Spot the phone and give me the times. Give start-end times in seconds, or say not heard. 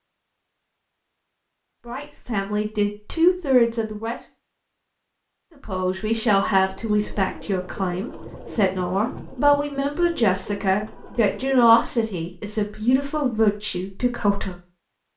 not heard.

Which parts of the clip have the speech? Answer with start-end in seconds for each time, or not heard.
1.9-4.2, 5.5-14.6.